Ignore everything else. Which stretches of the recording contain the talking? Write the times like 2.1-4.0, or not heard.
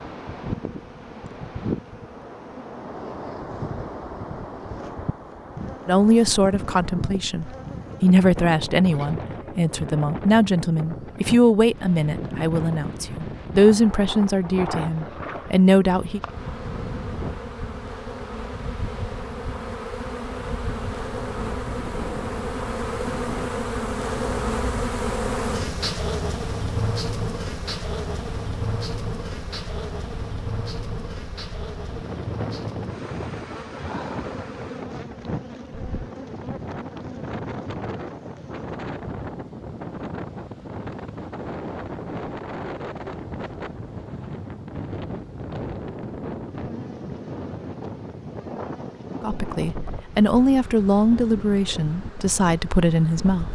5.8-16.2, 49.2-53.5.